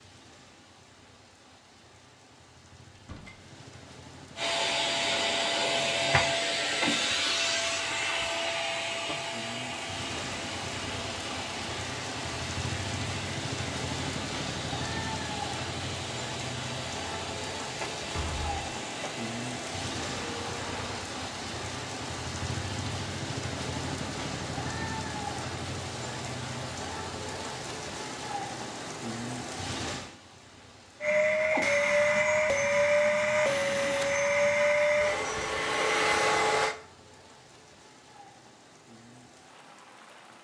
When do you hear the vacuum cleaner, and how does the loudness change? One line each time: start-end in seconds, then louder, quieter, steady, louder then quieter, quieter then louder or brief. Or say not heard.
4.3-21.1 quieter
31.0-36.8 steady.